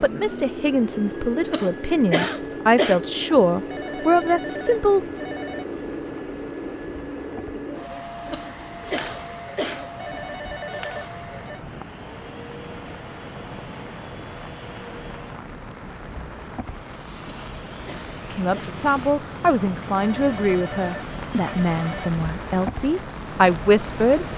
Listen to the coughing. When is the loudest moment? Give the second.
2 s.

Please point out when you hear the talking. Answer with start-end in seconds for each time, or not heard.
0.0-5.0, 18.3-24.2.